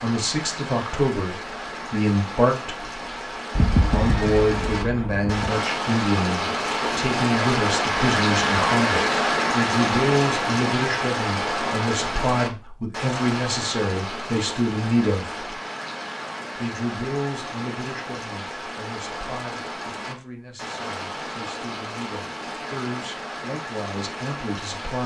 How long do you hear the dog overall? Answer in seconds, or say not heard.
not heard.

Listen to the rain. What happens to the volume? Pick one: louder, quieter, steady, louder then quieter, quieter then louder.
louder then quieter.